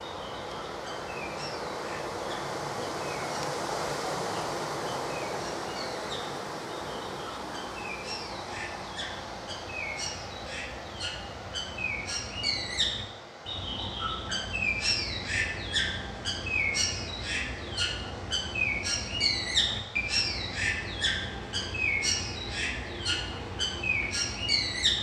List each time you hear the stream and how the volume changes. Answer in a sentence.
The stream can be heard from 0.0 to 24.9 s, getting quieter.